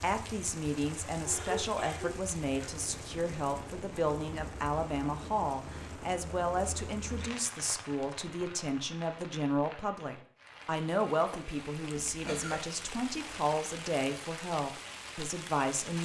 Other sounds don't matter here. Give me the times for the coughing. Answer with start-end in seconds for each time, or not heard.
1.2-2.9, 11.9-12.7.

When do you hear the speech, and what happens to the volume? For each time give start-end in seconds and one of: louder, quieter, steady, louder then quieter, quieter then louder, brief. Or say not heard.
0.0-16.0 steady.